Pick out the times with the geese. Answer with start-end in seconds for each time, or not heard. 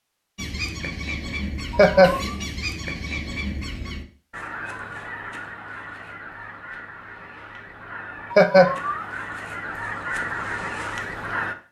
0.3-11.6.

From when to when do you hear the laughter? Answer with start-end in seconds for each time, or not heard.
1.7-2.2, 8.3-9.2.